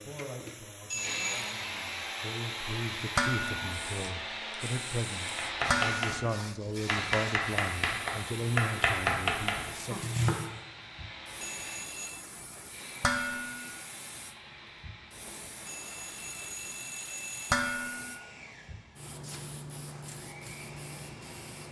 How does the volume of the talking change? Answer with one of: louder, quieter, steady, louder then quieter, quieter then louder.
louder.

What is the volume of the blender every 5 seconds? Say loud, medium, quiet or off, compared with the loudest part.
loud, loud, medium, quiet, quiet.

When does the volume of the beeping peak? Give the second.
1 s.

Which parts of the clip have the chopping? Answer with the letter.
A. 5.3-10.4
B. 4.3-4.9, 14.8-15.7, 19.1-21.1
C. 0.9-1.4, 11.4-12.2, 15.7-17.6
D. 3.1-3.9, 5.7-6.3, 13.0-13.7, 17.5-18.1
A.